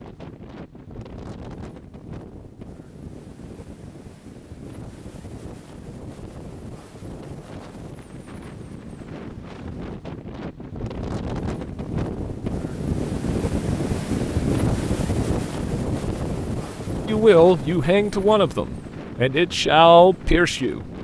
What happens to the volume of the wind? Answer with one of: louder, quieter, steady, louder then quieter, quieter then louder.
louder then quieter.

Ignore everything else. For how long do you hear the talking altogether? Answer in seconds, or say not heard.
4 s.